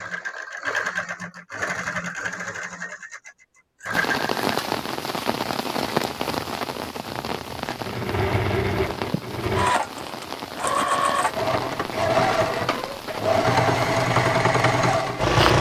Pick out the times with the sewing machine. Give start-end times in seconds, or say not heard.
0.0-4.5, 7.7-15.5.